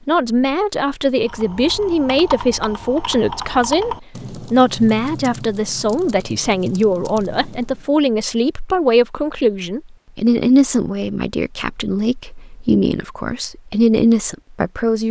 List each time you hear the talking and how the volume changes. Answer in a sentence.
You can hear the talking from 0.1 to 15.0 s, at a steady volume.